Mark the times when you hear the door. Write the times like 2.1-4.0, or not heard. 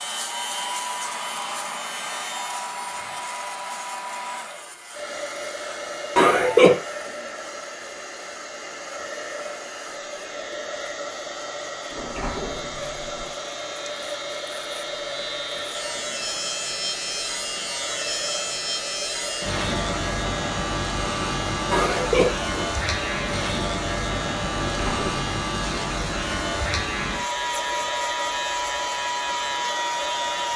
11.9-13.3, 24.5-25.3.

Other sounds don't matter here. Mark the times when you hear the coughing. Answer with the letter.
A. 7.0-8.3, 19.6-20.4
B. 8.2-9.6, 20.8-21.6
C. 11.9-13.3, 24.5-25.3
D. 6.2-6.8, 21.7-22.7
D.